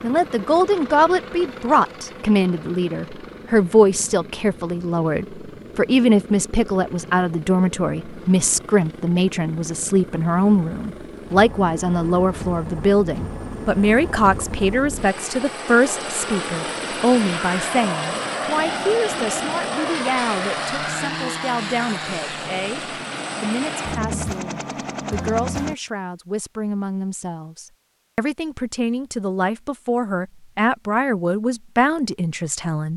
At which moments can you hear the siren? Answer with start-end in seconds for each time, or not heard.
not heard.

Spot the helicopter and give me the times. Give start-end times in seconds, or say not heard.
0.0-25.8.